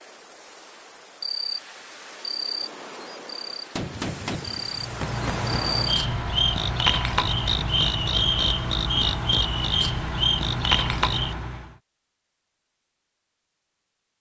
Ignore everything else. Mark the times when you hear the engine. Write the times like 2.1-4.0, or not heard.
4.7-11.8.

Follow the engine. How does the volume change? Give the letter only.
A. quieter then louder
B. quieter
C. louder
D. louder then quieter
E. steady
E.